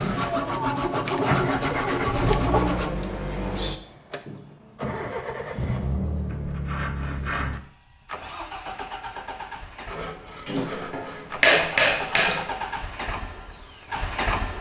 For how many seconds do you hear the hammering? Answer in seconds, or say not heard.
2 s.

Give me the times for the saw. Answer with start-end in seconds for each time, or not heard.
0.1-3.0, 6.2-7.6, 9.8-12.7.